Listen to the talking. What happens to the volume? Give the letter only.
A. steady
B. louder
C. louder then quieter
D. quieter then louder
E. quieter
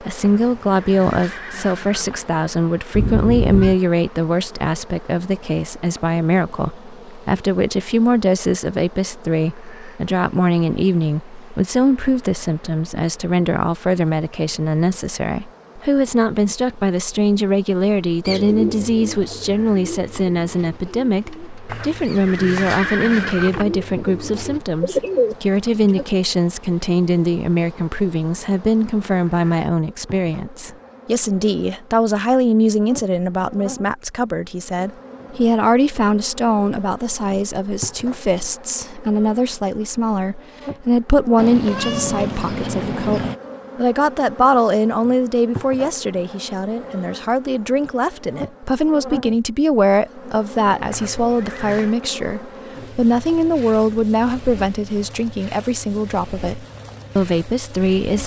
A.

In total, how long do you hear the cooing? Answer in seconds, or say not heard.
8 s.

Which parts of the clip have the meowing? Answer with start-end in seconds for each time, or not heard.
2.9-3.8, 41.4-43.4.